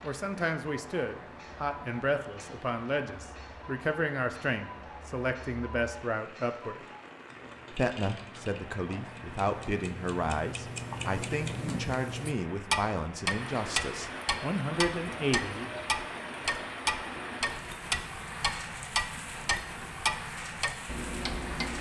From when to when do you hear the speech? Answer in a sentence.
The speech can be heard from 0.0 to 6.8 s and from 7.7 to 15.9 s.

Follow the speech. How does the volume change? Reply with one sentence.
The volume of the speech stays about the same.